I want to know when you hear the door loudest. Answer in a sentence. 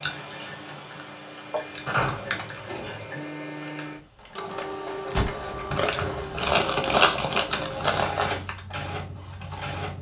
The volume of the door peaks at 2 seconds.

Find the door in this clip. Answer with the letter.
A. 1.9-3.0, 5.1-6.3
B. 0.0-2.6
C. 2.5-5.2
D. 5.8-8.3
A.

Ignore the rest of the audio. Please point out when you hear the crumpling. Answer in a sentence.
The crumpling can be heard from 5.8 to 8.3 s.